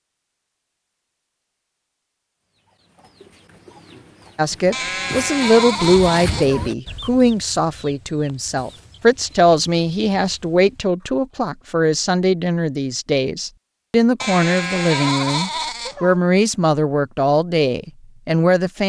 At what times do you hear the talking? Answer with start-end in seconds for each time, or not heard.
4.3-18.8.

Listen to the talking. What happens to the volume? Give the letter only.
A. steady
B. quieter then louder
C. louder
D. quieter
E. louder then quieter
A.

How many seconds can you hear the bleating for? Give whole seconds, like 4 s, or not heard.
4 s.